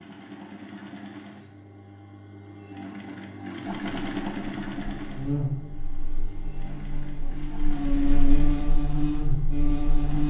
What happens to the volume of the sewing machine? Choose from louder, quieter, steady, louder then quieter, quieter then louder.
louder then quieter.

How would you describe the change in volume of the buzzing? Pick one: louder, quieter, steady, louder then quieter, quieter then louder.
quieter then louder.